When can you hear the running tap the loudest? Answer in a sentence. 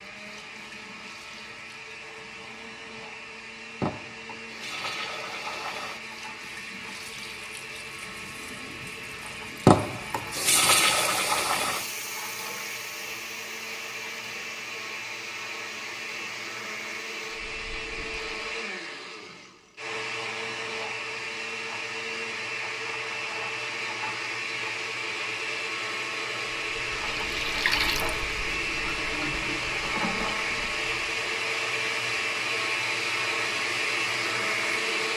The volume of the running tap peaks at 10 seconds.